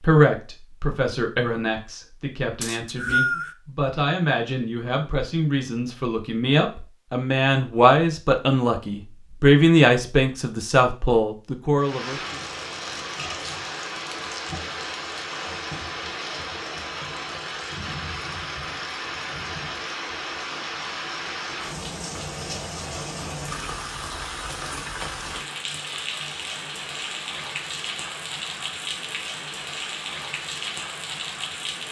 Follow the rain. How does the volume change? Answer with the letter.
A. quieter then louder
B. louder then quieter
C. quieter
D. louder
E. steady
E.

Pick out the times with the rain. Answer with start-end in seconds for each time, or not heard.
11.8-31.8.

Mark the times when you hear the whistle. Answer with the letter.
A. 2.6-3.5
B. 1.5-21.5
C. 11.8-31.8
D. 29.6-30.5
A.